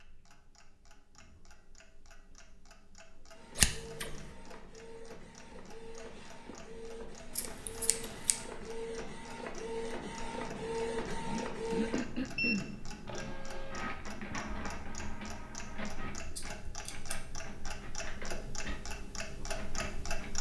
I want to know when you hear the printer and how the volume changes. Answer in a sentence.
You can hear the printer from 3.3 to 20.3 s, getting louder then quieter.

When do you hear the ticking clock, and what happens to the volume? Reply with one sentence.
The ticking clock can be heard from 0.0 to 20.3 s, getting louder.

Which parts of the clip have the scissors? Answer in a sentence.
The scissors can be heard from 3.5 to 4.2 s, from 7.3 to 8.4 s and from 16.4 to 17.2 s.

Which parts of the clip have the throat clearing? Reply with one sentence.
You can hear the throat clearing from 11.2 to 13.3 s.